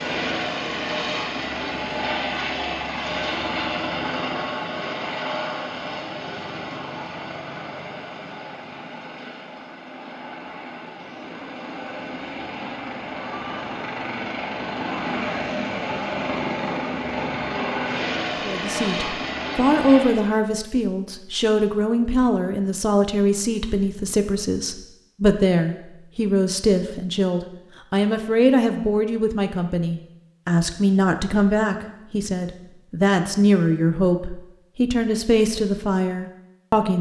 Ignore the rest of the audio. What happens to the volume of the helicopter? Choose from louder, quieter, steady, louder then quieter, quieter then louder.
quieter then louder.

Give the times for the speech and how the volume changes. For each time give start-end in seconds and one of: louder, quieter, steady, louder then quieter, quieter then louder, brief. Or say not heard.
18.4-36.9 steady.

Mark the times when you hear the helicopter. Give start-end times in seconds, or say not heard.
0.0-20.4.